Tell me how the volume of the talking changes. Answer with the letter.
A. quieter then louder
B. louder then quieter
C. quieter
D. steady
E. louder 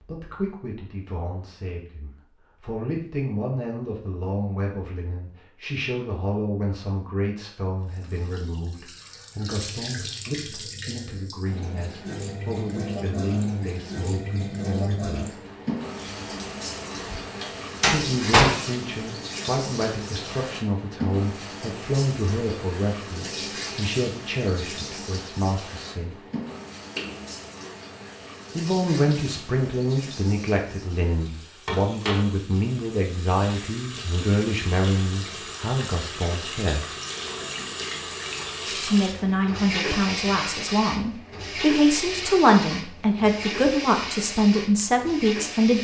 E.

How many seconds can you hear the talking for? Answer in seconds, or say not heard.
39 s.